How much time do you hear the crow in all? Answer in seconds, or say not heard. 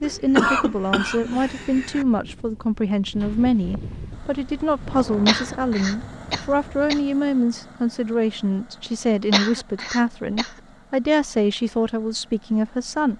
not heard.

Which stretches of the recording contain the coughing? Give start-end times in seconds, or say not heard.
0.0-2.0, 5.2-7.0, 9.3-10.5.